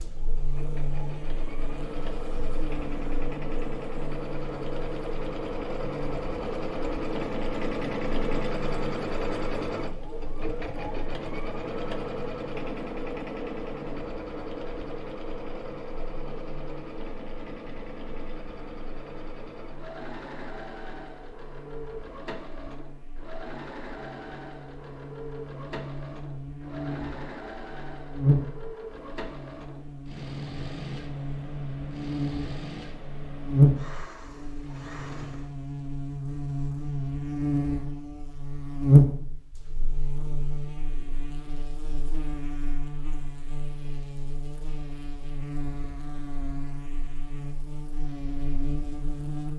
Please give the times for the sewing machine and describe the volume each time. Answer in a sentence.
You can hear the sewing machine from 0.0 to 35.5 s, getting quieter.